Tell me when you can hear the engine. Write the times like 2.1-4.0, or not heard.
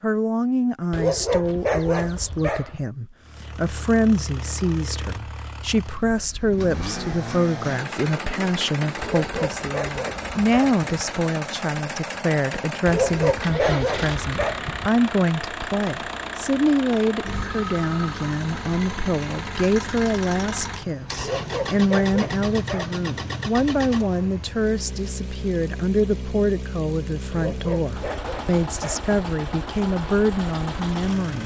3.2-31.4.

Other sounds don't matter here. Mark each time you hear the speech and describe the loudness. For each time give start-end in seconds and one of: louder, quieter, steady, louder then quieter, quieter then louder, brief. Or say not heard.
0.0-31.4 steady.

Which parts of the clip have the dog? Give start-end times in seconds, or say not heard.
0.9-2.9, 9.0-10.8, 12.8-14.9, 21.1-23.0, 27.3-29.1.